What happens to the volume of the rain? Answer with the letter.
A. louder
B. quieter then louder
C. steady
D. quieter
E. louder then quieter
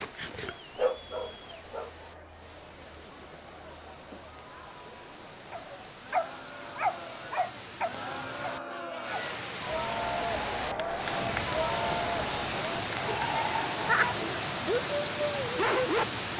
A.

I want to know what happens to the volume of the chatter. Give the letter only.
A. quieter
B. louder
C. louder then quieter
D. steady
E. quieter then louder
B.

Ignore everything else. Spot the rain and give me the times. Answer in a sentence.
The rain can be heard from 0.0 to 16.3 s.